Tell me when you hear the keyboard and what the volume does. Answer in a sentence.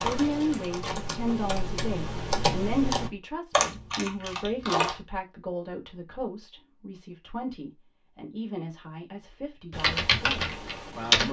You can hear the keyboard from 0.0 to 5.0 s, getting louder then quieter; and briefly from 9.7 to 11.2 s.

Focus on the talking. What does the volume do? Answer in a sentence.
The loudness of the talking goes down.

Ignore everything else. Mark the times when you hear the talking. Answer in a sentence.
You can hear the talking from 0.0 to 11.2 s.